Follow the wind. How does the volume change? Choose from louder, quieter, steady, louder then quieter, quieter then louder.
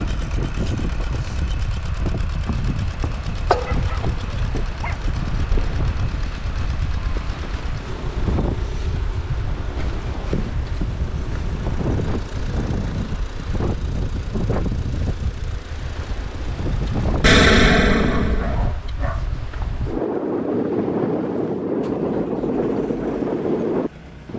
louder.